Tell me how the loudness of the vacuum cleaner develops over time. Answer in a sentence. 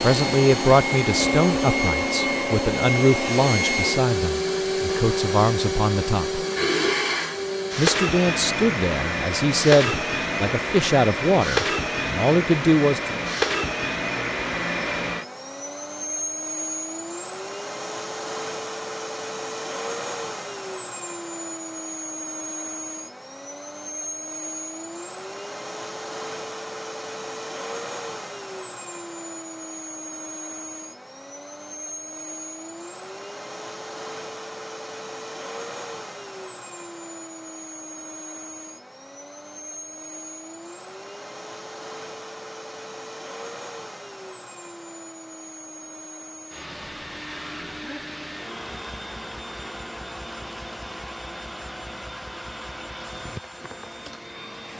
The volume of the vacuum cleaner goes down.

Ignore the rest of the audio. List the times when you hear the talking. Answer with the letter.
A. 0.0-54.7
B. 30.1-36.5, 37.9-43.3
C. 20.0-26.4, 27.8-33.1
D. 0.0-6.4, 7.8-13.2
D.